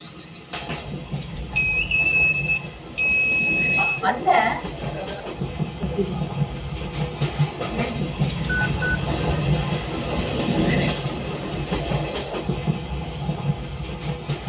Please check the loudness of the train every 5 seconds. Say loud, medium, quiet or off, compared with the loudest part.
medium, loud, loud.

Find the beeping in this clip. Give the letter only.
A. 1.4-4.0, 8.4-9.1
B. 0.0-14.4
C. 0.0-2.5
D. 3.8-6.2
A.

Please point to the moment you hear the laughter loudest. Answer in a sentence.
The loudest moment of the laughter is at 4 seconds.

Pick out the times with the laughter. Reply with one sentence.
The laughter can be heard from 3.8 to 6.2 s.